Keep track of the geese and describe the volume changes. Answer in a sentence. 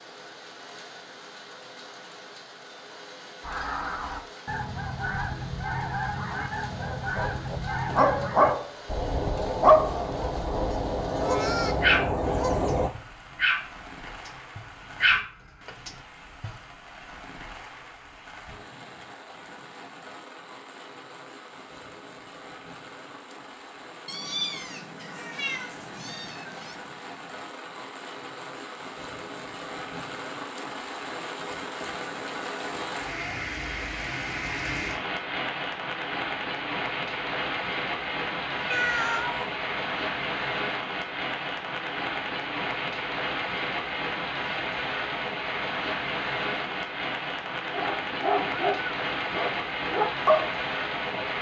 The loudness of the geese goes up.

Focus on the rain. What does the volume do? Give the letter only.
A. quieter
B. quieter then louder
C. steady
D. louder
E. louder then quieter
D.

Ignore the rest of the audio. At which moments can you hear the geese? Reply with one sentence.
The geese can be heard from 3.4 to 12.9 s.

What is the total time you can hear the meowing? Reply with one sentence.
The meowing can be heard for 4 seconds in total.